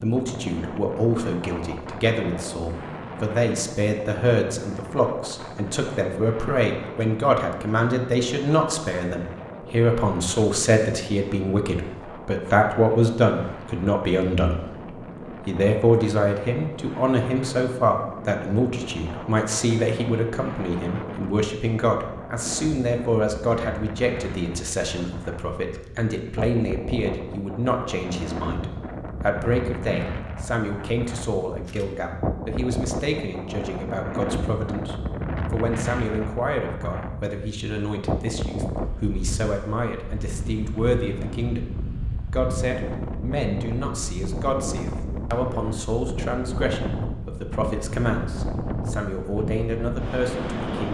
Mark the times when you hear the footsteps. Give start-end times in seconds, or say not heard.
not heard.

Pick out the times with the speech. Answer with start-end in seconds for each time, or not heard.
0.0-14.8, 15.4-41.7, 42.3-50.8.